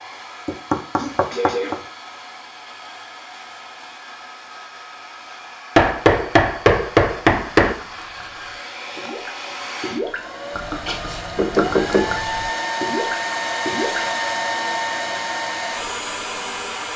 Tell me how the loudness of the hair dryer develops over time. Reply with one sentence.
The loudness of the hair dryer goes up.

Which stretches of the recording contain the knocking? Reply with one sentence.
The knocking can be heard from 0.5 to 1.8 s, from 5.8 to 7.8 s and from 11.3 to 12.1 s.